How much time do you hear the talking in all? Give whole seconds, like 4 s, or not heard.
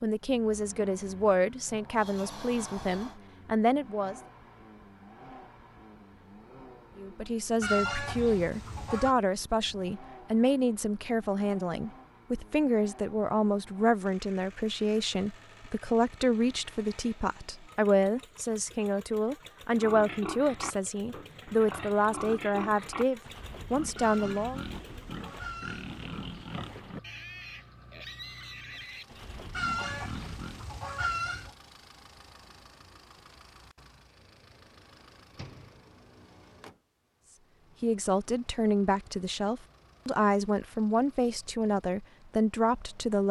27 s.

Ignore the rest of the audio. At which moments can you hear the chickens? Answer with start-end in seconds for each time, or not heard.
7.6-9.2, 23.9-26.6, 29.5-31.5.